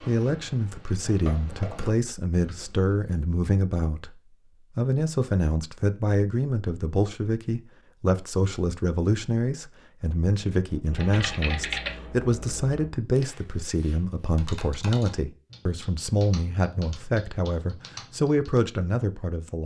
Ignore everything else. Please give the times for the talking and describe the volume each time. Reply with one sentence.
The talking can be heard from 0.0 to 19.6 s, at a steady volume.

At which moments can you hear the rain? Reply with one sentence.
You can't hear the rain here.